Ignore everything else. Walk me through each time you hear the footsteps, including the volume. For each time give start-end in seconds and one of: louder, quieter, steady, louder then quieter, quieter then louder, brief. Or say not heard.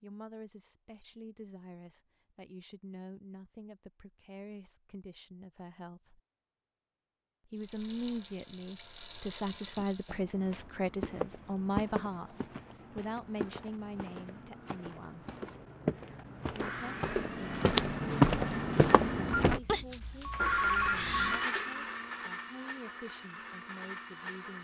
9.8-19.6 quieter then louder.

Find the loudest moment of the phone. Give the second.
21 s.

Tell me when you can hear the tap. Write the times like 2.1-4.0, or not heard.
7.5-10.2.